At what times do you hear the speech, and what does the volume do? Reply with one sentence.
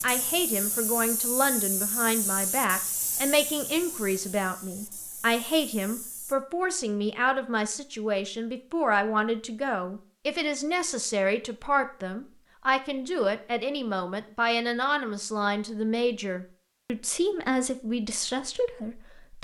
You can hear the speech from 0.0 to 19.3 s, at a steady volume.